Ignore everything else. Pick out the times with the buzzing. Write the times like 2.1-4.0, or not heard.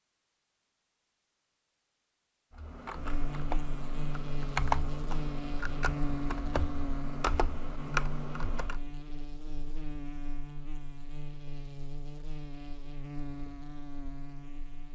3.0-14.9.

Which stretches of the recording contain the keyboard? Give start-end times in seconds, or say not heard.
2.5-8.8.